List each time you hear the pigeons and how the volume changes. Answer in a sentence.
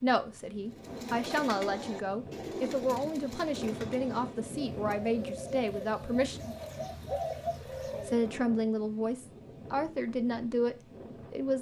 The pigeons can be heard from 0.8 to 8.3 s, getting quieter then louder.